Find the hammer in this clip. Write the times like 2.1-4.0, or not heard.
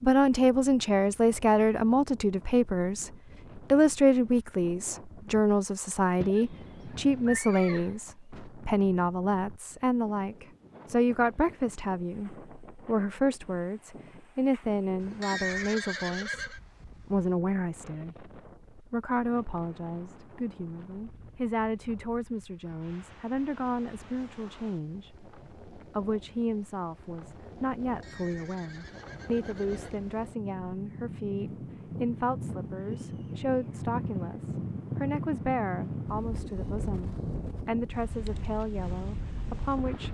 not heard.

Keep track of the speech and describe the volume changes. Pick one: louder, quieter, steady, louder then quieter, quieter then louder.
quieter.